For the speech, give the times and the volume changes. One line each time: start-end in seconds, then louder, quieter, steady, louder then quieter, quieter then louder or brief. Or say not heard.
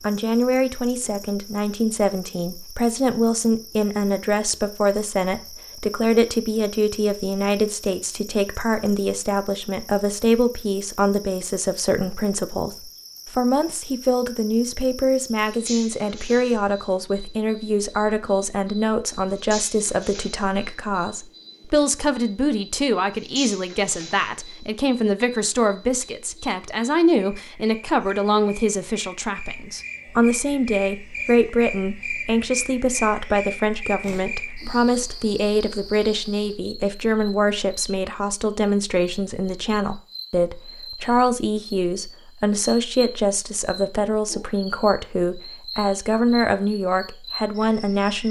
0.0-48.2 steady.